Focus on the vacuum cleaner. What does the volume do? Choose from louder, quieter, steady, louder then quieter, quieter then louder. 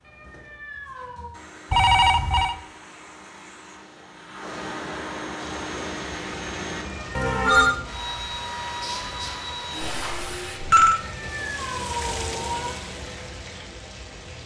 louder.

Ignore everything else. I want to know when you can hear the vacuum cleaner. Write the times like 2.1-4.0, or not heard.
0.0-10.6.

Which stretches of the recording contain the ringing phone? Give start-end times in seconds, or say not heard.
1.7-2.5, 7.2-7.8, 9.8-11.0.